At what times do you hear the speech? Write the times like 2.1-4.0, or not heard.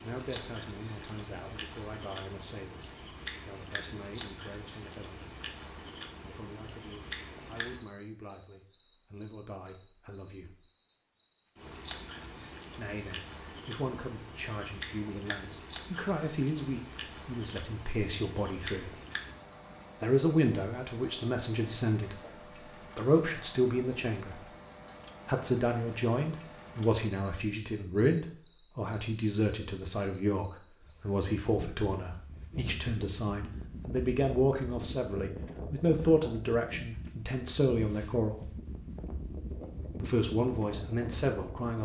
0.0-5.3, 6.2-10.6, 12.8-18.9, 20.0-24.4, 25.2-38.5, 40.0-41.8.